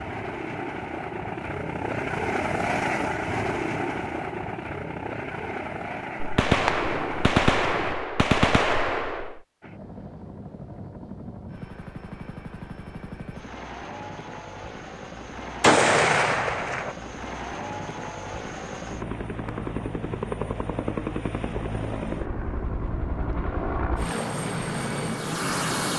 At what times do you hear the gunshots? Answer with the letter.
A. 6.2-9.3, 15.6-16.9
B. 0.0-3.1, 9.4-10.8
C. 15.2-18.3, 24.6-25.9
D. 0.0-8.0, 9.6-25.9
A.